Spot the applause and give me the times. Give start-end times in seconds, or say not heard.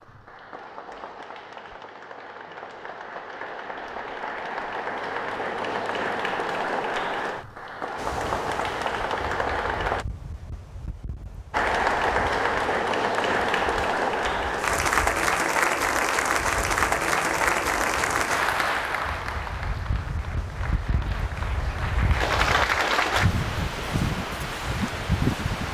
0.0-10.1, 11.5-23.3.